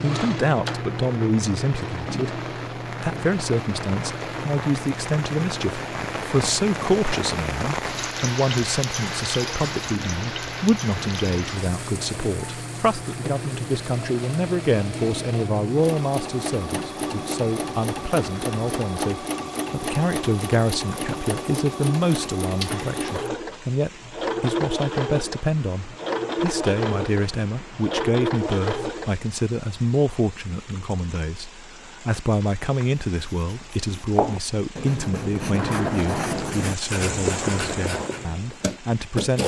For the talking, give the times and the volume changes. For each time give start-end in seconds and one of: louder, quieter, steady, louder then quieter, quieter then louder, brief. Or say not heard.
0.0-39.4 steady.